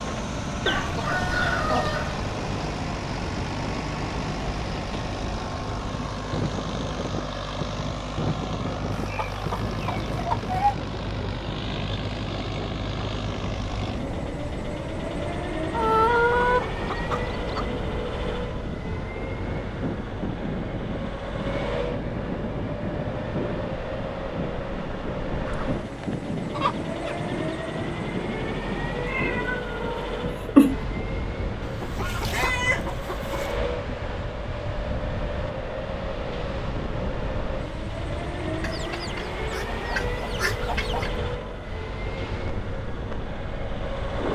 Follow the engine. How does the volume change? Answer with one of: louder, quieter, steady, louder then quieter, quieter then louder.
steady.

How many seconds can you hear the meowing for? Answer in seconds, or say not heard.
2 s.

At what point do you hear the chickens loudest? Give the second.
16 s.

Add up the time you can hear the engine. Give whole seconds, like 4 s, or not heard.
44 s.